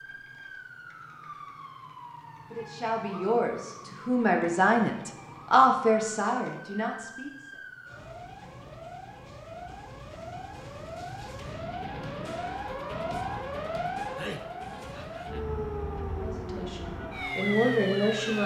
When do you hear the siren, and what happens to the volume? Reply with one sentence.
The siren can be heard from 0.0 to 18.4 s, getting louder.